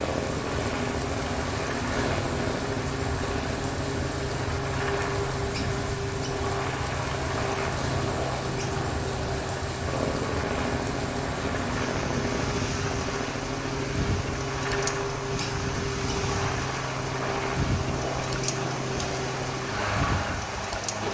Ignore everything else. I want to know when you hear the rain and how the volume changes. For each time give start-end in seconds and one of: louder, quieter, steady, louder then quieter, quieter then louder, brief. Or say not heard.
0.0-21.0 steady.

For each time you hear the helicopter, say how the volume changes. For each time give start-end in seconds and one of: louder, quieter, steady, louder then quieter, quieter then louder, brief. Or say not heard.
0.0-21.0 steady.